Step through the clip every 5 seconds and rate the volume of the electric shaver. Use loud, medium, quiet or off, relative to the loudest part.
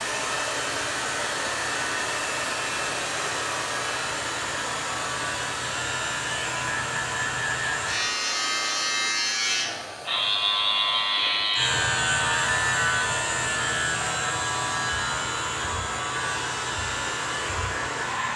medium, loud, loud, medium.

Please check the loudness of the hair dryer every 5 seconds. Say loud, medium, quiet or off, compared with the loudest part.
loud, medium, medium, loud.